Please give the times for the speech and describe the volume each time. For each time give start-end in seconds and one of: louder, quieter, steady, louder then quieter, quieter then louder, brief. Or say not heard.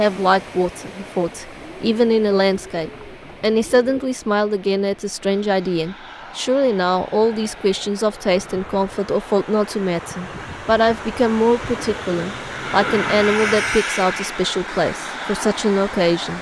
0.0-16.3 steady.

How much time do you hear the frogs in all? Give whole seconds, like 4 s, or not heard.
not heard.